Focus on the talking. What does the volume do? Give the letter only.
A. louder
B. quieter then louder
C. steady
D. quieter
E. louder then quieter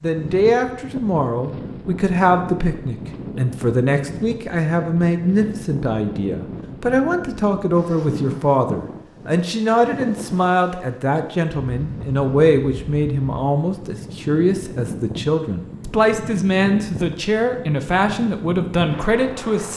C.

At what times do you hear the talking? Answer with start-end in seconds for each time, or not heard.
0.0-19.7.